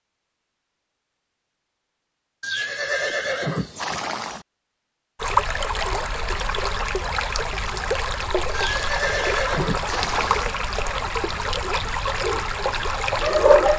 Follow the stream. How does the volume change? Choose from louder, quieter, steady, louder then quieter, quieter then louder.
steady.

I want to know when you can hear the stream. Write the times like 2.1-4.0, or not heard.
5.2-13.7.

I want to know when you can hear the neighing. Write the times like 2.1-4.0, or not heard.
2.4-4.5, 8.5-10.6.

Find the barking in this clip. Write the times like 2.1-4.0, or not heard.
12.2-13.7.